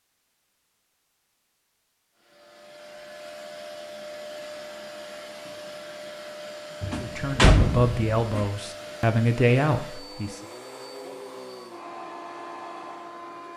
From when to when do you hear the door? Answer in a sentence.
You can hear the door from 6.8 to 8.4 s.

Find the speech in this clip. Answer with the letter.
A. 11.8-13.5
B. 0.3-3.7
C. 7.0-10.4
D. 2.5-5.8
C.